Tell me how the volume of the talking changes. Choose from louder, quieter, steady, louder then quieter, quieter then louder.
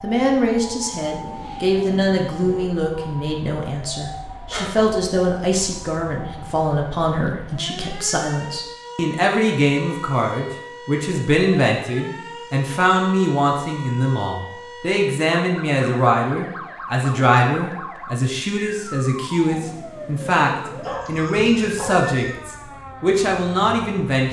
steady.